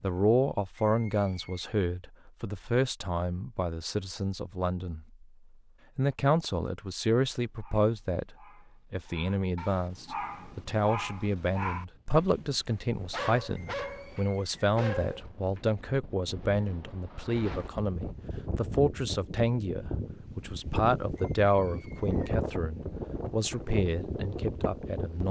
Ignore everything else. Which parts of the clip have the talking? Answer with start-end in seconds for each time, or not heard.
0.0-5.2, 6.0-25.2.